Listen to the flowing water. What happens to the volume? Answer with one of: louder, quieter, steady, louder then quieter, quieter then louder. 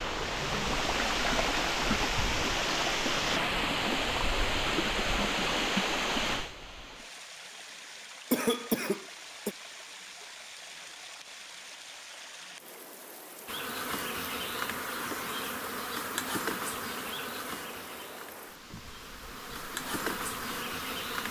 quieter.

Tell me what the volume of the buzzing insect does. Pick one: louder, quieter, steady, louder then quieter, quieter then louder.
quieter then louder.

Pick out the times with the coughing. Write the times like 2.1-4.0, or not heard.
8.3-9.6.